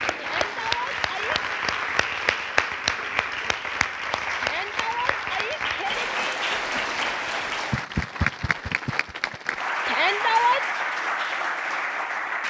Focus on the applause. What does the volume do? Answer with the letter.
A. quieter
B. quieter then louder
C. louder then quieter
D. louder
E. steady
E.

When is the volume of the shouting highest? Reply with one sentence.
The volume of the shouting peaks at 10 seconds.